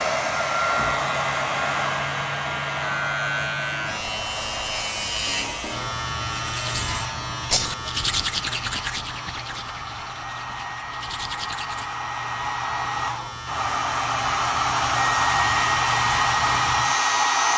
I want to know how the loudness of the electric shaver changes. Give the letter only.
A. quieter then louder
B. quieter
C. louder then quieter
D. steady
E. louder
A.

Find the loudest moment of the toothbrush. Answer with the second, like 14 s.
8 s.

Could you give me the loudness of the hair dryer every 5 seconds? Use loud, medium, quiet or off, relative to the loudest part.
medium, quiet, medium, loud.